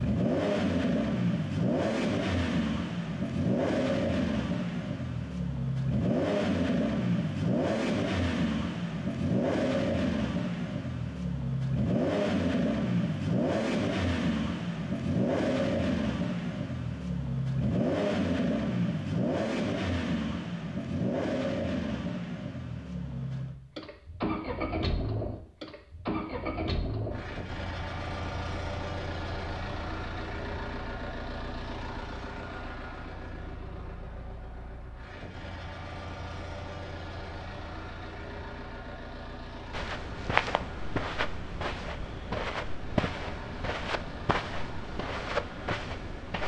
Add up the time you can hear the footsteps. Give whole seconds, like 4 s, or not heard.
7 s.